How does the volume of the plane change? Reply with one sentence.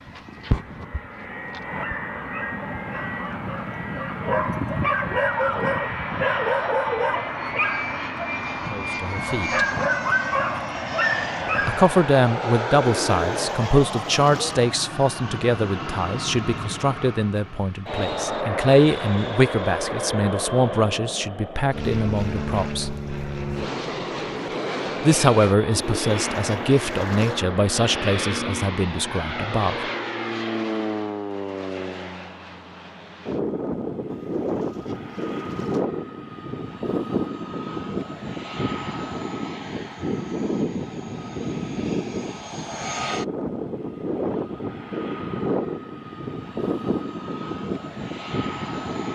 The volume of the plane stays about the same.